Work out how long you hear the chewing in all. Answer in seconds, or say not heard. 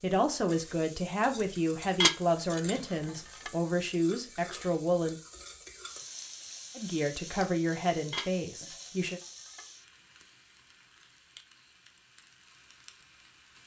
not heard.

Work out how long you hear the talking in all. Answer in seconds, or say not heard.
8 s.